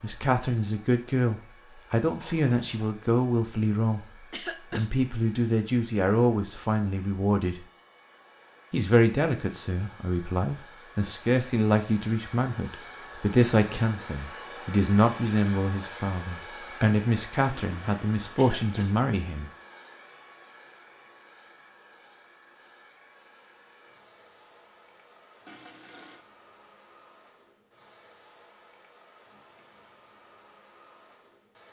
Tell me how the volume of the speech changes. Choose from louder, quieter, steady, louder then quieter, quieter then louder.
steady.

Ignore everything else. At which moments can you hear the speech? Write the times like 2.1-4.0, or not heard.
0.0-7.7, 8.7-19.5.